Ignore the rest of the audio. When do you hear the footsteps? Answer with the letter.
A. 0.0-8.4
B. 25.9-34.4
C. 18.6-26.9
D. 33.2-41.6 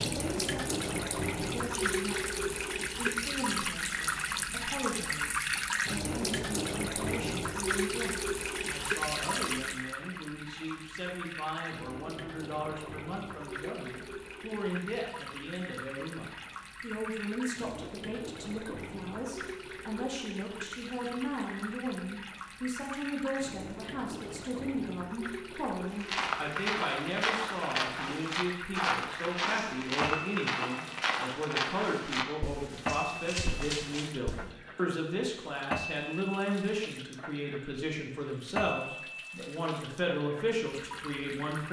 B.